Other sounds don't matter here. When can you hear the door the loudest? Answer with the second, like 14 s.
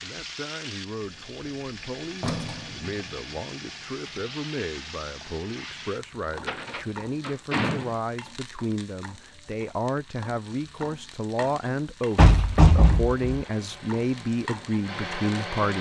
13 s.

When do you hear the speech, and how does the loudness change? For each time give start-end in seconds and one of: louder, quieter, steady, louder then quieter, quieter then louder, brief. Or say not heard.
0.0-15.7 louder.